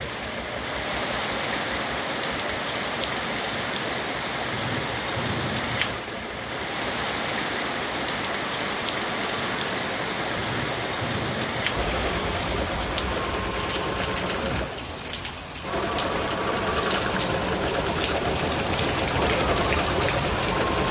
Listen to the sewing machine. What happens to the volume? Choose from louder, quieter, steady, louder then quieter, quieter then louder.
louder.